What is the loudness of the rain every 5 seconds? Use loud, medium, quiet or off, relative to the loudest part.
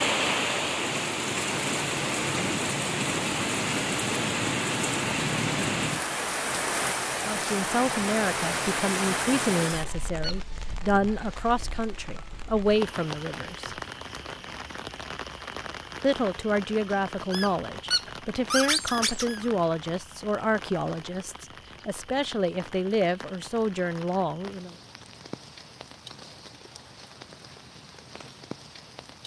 loud, loud, quiet, quiet, quiet, quiet.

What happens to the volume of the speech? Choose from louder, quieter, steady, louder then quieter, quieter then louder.
steady.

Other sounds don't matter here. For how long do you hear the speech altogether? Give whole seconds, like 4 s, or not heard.
15 s.